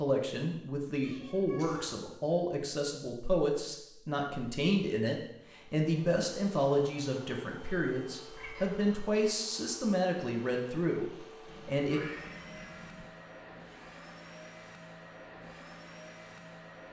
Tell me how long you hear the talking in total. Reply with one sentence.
The talking can be heard for 12 seconds in total.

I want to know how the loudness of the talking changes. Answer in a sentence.
The loudness of the talking stays about the same.